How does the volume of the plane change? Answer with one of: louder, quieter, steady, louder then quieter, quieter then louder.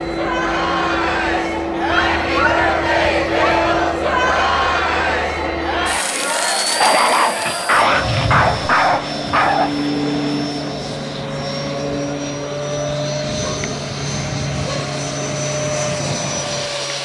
steady.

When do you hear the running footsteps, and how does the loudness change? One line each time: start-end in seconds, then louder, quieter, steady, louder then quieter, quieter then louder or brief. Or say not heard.
not heard.